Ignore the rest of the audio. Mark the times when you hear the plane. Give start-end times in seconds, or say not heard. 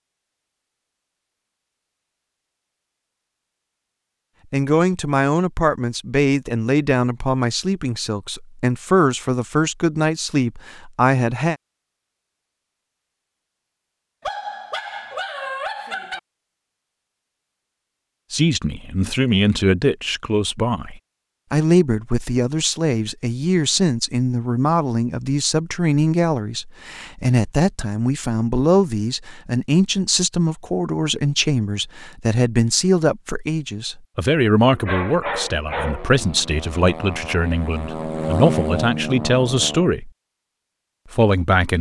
36.0-39.9.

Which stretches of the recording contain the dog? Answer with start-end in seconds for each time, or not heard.
14.2-16.2, 34.6-36.2.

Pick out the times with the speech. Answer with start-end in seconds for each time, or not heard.
4.5-11.6, 18.3-40.1, 41.1-41.7.